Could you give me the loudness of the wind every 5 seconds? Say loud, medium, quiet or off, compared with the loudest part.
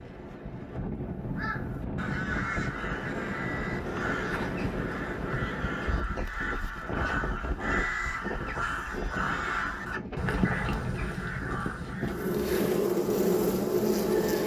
loud, loud, medium.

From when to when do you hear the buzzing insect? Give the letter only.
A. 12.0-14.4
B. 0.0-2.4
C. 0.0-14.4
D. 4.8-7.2
A.